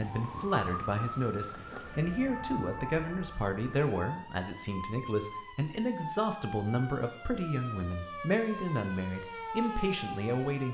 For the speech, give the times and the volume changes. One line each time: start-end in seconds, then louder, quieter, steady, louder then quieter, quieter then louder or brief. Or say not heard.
0.0-10.7 steady.